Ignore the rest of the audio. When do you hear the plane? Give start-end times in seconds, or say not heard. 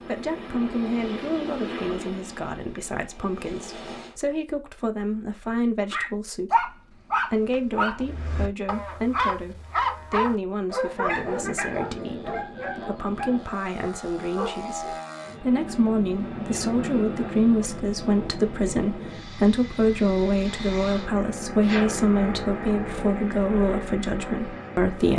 0.0-4.2, 10.8-25.1.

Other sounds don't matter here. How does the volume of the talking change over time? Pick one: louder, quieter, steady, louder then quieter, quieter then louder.
louder.